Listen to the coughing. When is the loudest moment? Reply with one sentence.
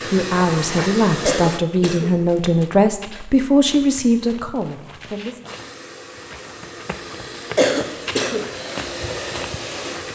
The loudest moment of the coughing is at 8 seconds.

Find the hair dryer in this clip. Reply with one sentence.
The hair dryer can be heard from 0.0 to 1.6 s and from 5.5 to 10.0 s.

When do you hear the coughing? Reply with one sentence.
The coughing can be heard from 1.2 to 2.4 s and from 7.5 to 8.5 s.